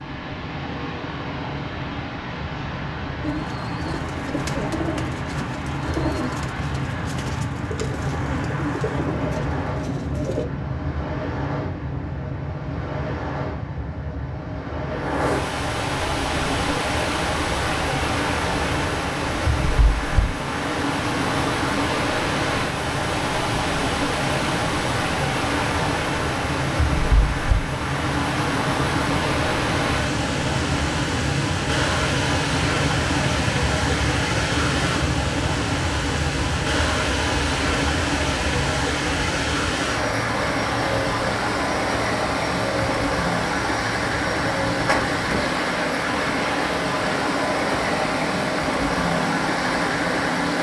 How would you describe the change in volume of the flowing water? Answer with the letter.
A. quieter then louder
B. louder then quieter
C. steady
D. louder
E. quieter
D.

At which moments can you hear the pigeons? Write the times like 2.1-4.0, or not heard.
3.2-10.4.